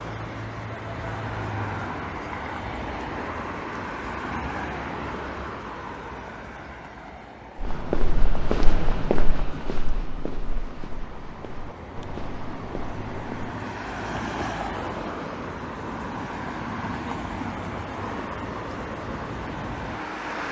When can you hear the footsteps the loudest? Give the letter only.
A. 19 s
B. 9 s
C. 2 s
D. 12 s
B.